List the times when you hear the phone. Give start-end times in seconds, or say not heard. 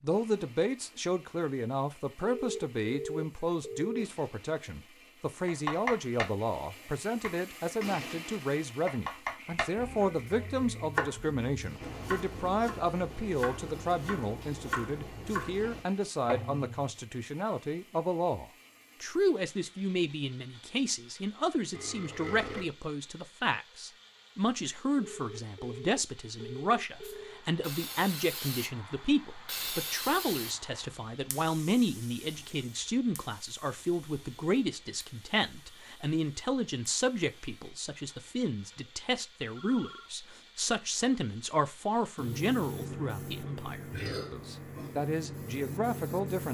2.2-4.0, 24.9-27.4, 39.4-40.1.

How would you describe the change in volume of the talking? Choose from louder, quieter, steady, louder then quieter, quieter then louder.
steady.